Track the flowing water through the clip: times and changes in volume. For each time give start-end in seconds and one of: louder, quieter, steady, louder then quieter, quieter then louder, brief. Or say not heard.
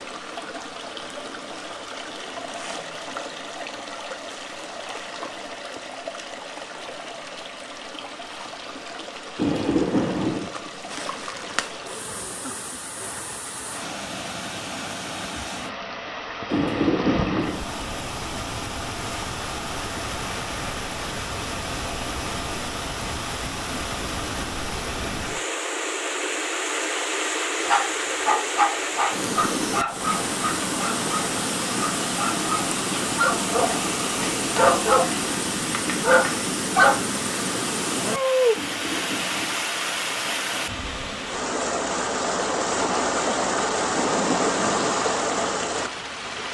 0.0-46.4 louder.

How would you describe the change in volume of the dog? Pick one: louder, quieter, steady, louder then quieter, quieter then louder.
quieter then louder.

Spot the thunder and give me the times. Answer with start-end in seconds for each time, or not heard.
9.3-10.5, 16.5-17.6, 38.5-39.6.